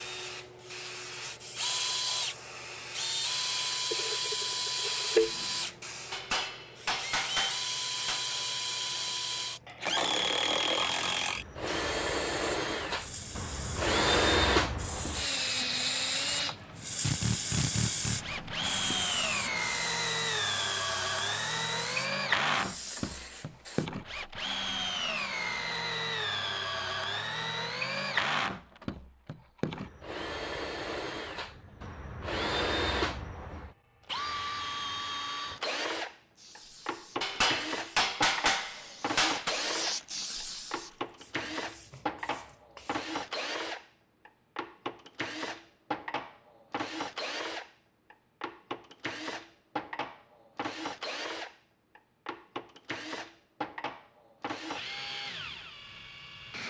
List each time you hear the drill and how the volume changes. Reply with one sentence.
The drill can be heard from 0.0 to 5.8 s, getting louder; and from 6.8 to 56.6 s, getting quieter.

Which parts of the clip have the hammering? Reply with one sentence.
You can hear the hammering from 6.1 to 8.2 s and from 37.2 to 39.5 s.